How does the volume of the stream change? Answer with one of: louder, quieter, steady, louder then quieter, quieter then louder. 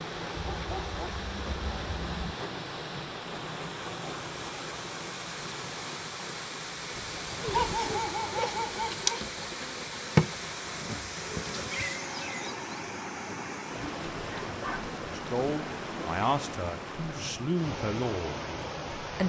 steady.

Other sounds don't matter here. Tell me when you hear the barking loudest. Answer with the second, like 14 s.
8 s.